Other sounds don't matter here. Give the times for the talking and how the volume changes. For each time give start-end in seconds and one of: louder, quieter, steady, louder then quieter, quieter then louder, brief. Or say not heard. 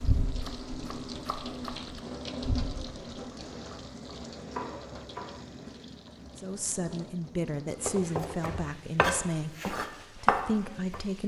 6.3-11.2 steady.